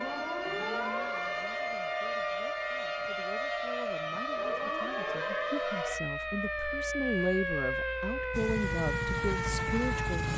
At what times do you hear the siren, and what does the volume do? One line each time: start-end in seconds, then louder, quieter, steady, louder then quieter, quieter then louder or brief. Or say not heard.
0.0-10.3 steady.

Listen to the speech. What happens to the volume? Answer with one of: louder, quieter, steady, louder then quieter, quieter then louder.
louder.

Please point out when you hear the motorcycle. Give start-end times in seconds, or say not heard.
8.3-10.3.